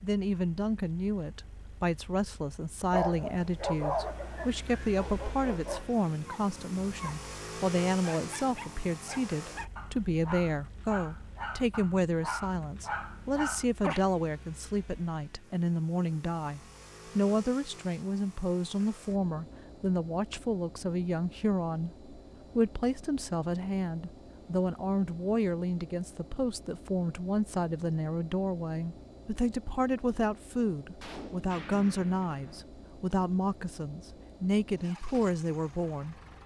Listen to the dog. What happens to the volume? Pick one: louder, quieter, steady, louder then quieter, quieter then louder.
quieter then louder.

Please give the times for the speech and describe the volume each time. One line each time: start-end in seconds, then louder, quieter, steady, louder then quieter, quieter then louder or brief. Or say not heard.
0.0-36.1 steady.